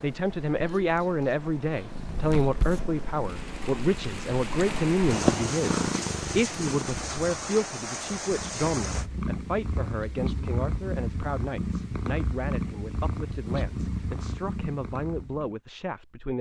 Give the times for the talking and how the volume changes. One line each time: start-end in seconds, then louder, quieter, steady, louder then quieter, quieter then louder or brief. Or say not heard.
0.0-16.3 quieter.